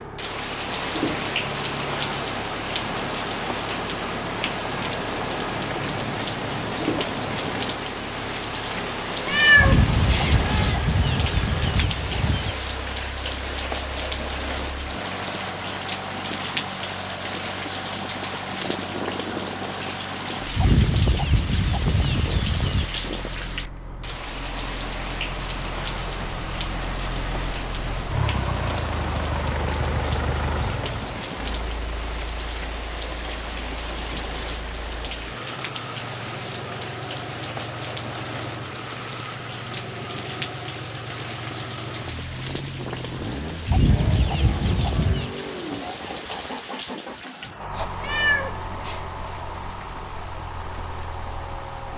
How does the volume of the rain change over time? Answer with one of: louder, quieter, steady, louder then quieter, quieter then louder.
quieter.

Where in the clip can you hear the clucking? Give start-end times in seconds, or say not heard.
9.6-12.6, 20.6-22.9, 43.6-45.4.